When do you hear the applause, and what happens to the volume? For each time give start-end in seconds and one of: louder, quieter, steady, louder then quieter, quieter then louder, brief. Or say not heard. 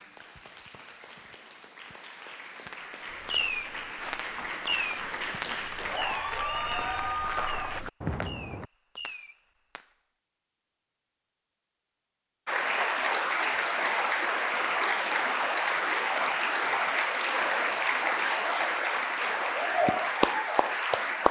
0.0-7.8 louder
12.4-21.2 steady.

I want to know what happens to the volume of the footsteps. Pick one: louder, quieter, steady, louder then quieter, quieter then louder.
louder.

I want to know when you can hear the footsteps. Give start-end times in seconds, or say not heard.
3.0-8.7.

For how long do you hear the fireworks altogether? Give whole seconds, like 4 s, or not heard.
7 s.